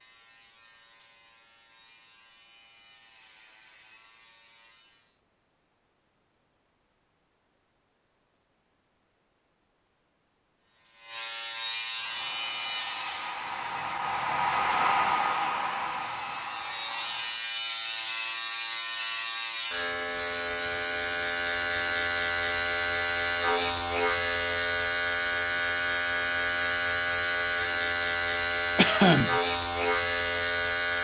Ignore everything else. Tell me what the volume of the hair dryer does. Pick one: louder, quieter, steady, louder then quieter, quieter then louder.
louder then quieter.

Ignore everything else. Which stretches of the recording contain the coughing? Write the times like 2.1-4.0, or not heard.
28.8-29.4.